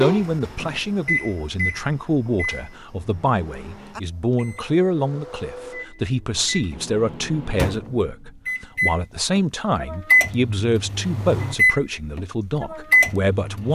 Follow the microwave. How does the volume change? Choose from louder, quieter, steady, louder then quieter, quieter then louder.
quieter then louder.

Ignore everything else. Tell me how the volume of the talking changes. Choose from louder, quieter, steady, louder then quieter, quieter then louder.
steady.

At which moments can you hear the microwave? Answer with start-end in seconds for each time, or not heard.
0.0-13.7.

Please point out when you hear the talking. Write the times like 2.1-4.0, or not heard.
0.0-13.7.